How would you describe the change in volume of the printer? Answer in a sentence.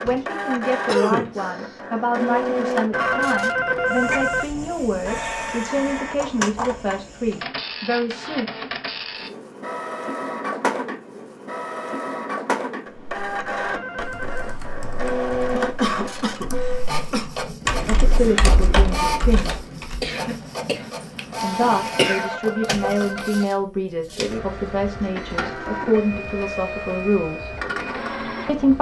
The loudness of the printer stays about the same.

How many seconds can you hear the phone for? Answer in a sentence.
The phone can be heard for 4 seconds in total.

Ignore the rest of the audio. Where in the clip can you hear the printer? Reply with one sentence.
The printer can be heard from 0.0 to 28.7 s.